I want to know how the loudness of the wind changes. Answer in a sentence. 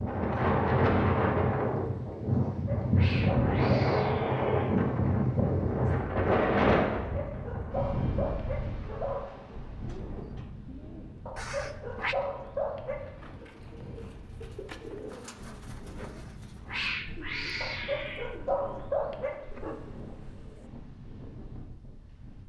The volume of the wind goes down.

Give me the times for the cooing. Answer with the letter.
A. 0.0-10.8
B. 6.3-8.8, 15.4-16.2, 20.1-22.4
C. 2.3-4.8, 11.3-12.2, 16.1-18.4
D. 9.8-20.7
D.